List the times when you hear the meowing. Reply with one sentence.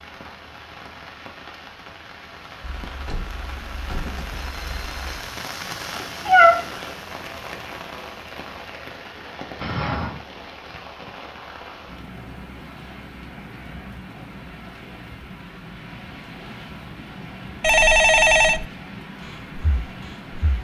The meowing can be heard from 6.0 to 6.8 s.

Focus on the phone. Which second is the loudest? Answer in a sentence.
The loudest moment of the phone is at 18 seconds.